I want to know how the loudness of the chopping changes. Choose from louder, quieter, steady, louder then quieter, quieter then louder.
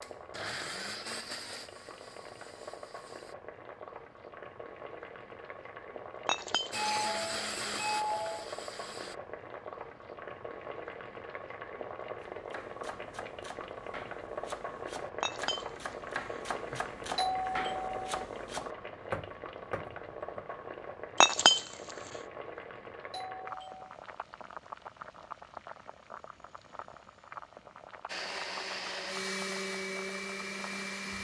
louder.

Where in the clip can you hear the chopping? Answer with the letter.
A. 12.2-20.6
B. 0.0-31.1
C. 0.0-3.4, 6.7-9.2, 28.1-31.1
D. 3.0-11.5
A.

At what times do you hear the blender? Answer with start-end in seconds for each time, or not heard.
0.0-3.4, 6.7-9.2, 28.1-31.1.